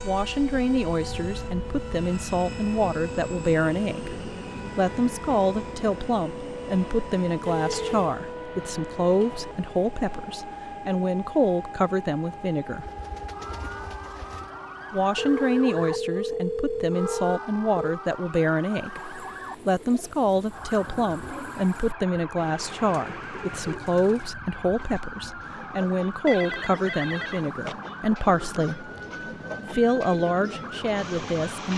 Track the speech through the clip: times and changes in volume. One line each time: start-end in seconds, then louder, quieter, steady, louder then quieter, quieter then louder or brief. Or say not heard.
0.1-12.9 steady
14.9-28.9 steady
29.7-31.7 brief.